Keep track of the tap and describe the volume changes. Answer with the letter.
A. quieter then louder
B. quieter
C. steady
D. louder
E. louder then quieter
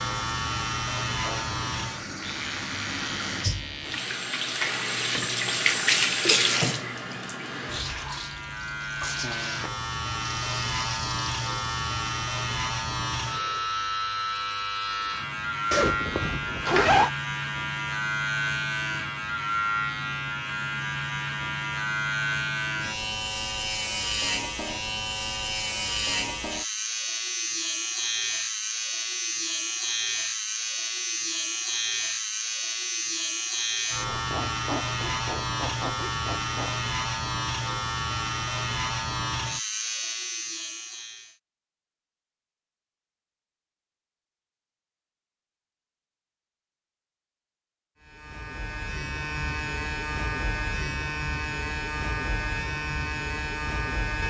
E.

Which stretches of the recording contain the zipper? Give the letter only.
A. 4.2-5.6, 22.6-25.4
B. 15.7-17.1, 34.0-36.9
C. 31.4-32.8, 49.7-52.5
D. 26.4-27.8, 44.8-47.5
B.